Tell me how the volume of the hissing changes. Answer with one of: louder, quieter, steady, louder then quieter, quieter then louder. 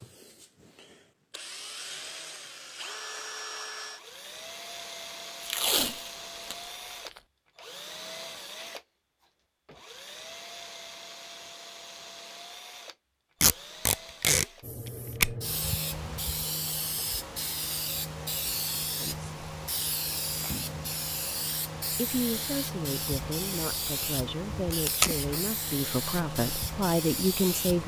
steady.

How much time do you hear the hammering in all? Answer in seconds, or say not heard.
not heard.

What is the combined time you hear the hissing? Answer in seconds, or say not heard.
13 s.